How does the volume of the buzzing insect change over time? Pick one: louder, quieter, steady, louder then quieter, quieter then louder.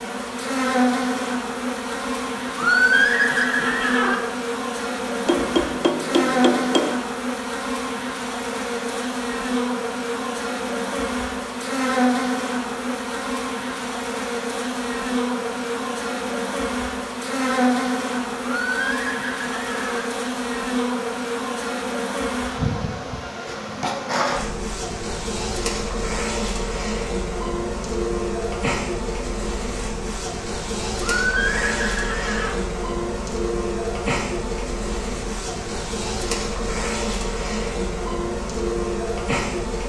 steady.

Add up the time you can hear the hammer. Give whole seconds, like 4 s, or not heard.
2 s.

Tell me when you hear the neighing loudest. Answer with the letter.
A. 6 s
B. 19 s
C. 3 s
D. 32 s
C.